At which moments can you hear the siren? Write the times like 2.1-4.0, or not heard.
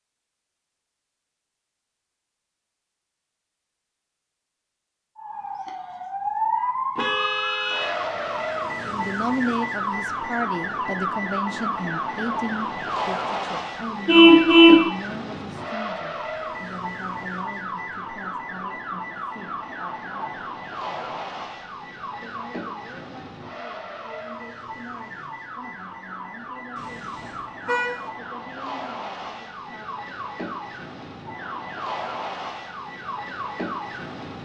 5.2-34.4.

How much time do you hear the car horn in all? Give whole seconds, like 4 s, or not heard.
4 s.